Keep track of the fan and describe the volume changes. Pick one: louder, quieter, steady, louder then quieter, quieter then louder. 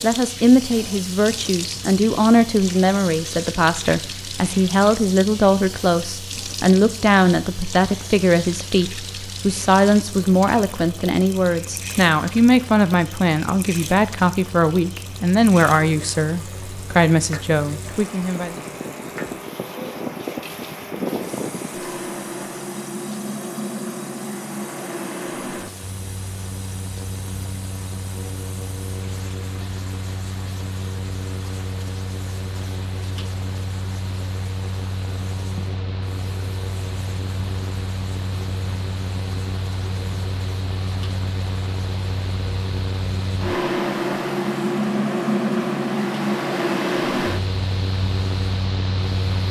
louder.